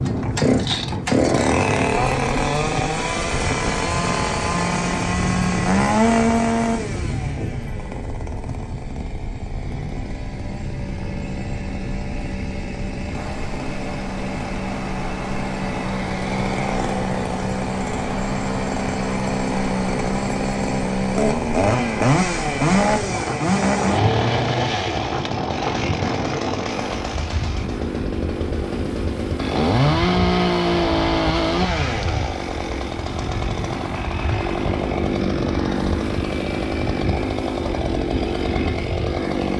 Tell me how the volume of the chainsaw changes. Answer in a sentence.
The loudness of the chainsaw goes down, then up.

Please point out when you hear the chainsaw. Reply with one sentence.
You can hear the chainsaw from 0.0 to 39.5 s.